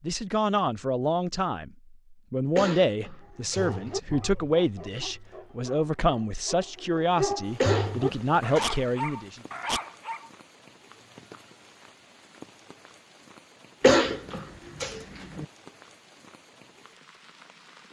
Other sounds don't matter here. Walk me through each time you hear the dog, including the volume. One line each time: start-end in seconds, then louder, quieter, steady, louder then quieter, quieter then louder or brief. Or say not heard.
3.2-10.3 quieter then louder.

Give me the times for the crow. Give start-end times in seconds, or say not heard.
not heard.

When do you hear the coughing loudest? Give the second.
14 s.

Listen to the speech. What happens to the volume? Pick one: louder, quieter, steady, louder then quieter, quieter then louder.
steady.